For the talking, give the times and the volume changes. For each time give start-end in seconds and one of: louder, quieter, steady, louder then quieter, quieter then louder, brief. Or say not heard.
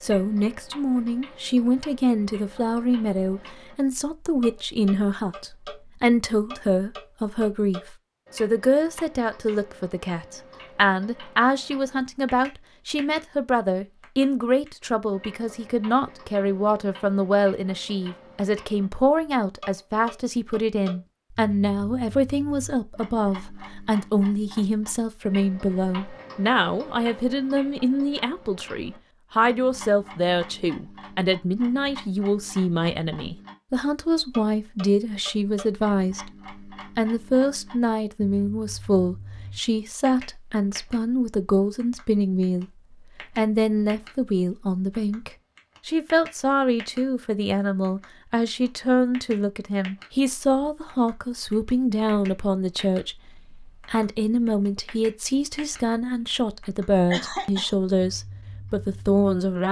0.0-42.6 steady
43.4-59.6 steady.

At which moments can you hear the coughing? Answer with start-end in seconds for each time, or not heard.
57.1-57.8.